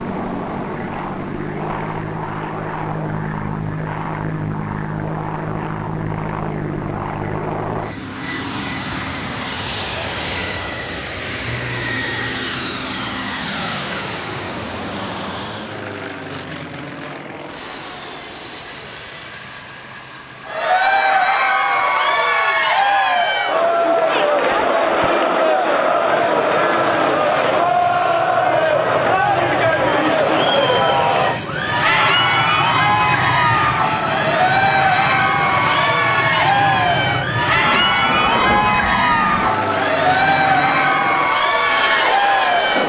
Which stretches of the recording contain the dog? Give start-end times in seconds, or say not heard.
not heard.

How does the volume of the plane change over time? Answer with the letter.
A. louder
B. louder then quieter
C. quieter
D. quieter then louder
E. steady
D.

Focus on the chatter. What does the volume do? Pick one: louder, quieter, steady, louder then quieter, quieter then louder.
steady.